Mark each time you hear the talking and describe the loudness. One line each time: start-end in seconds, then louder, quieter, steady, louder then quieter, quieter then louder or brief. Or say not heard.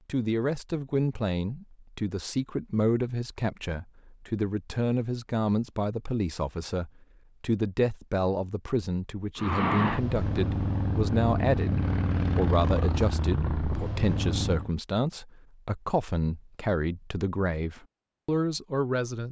0.1-19.2 steady.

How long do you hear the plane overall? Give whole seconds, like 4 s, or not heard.
5 s.